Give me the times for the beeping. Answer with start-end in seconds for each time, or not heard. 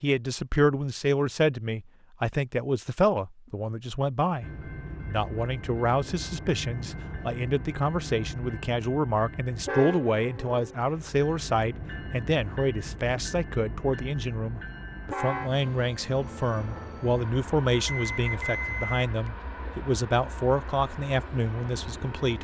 17.9-19.3.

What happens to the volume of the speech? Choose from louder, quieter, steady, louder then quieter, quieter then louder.
steady.